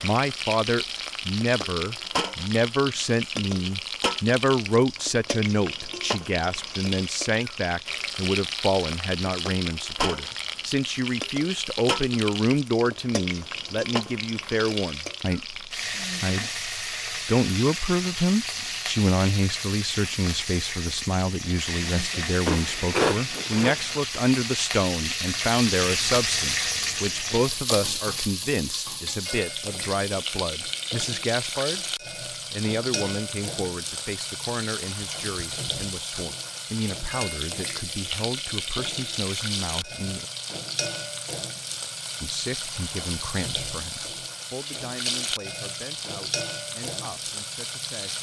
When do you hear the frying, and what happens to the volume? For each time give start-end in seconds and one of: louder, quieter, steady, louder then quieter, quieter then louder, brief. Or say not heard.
0.0-48.1 steady.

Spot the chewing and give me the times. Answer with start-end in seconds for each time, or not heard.
22.4-24.0.